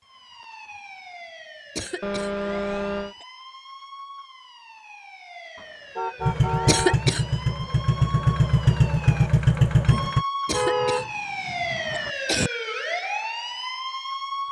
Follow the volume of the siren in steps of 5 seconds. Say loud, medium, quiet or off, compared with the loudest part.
quiet, medium, loud.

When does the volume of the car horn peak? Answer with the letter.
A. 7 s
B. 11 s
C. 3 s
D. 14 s
B.